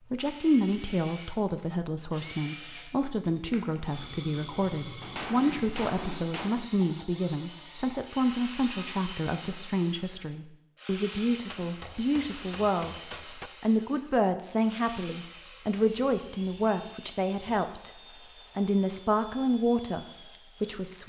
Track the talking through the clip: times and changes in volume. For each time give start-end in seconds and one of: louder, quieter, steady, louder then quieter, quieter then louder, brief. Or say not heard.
0.1-17.9 steady
18.6-21.0 brief.